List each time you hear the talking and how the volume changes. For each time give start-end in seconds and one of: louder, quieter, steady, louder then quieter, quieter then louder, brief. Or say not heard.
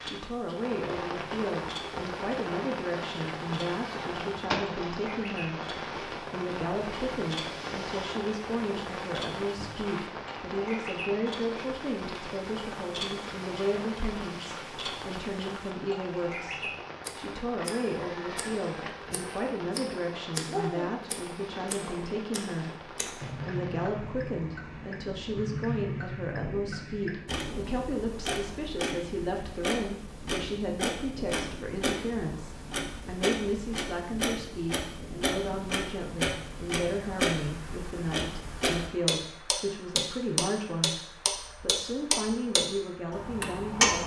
0.0-44.0 steady.